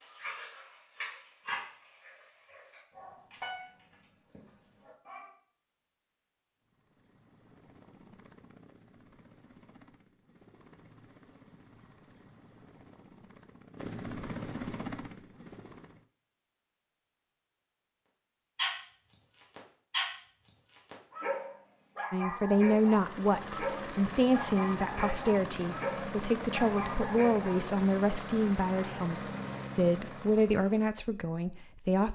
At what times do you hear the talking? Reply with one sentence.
The talking can be heard from 22.1 to 32.1 s.